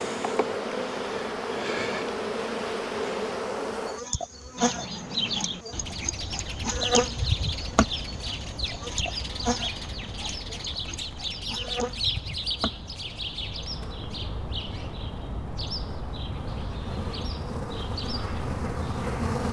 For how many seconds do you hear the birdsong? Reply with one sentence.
The birdsong can be heard for 15 seconds in total.